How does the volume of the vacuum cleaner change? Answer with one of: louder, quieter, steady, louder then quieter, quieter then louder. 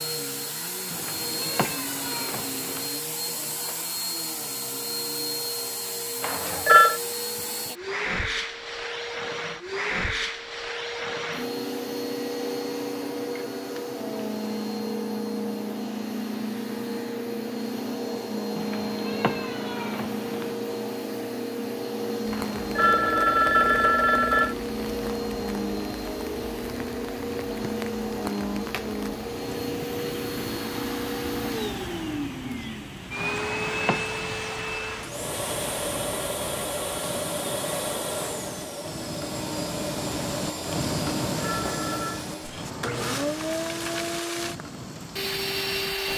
steady.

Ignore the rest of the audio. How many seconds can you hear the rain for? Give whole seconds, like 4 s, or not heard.
24 s.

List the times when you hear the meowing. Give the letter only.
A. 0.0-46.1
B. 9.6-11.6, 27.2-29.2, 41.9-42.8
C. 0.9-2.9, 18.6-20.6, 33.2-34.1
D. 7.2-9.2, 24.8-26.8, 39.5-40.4
C.